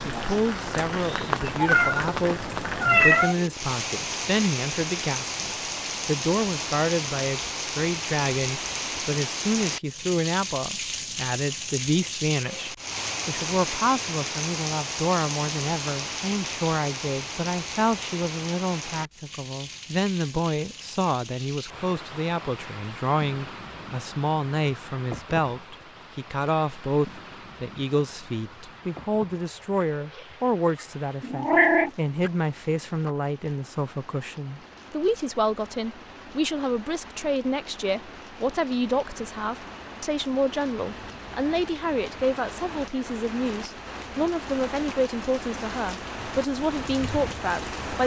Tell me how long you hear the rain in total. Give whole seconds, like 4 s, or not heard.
48 s.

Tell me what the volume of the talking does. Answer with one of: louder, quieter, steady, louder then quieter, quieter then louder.
steady.